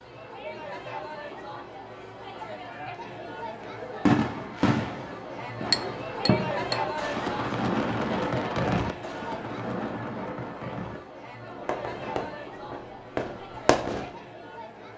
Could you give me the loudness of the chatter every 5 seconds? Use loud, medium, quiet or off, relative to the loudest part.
medium, loud, medium.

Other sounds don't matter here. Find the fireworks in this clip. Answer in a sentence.
You can hear the fireworks from 4.0 to 14.2 s.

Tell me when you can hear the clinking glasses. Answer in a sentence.
The clinking glasses can be heard from 5.7 to 6.8 s.